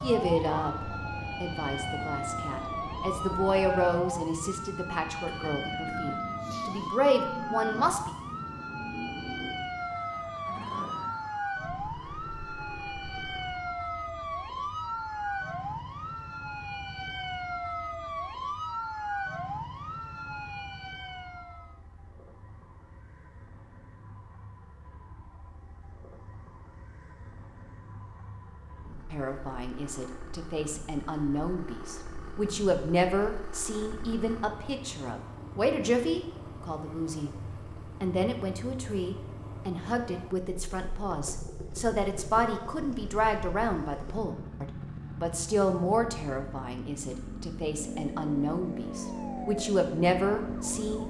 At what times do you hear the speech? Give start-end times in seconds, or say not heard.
0.0-8.1, 29.1-37.4, 38.0-51.0.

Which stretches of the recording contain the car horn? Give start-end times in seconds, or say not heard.
not heard.